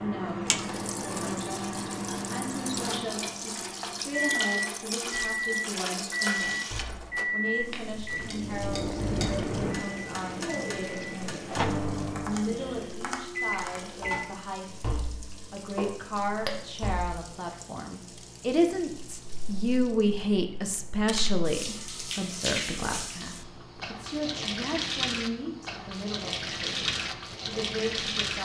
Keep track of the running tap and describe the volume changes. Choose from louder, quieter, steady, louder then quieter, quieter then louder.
quieter then louder.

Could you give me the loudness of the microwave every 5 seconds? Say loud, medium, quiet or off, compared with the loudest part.
loud, loud, loud, quiet, quiet, quiet.